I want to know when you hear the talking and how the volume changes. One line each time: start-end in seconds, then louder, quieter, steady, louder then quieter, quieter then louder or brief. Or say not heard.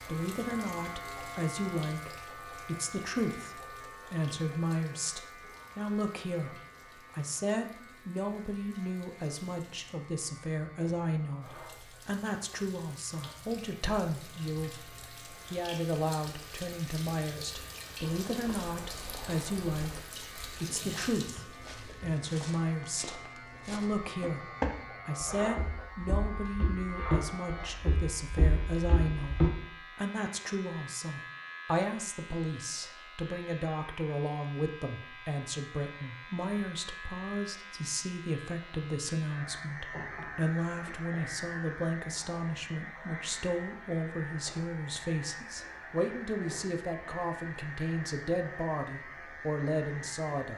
0.1-50.5 steady.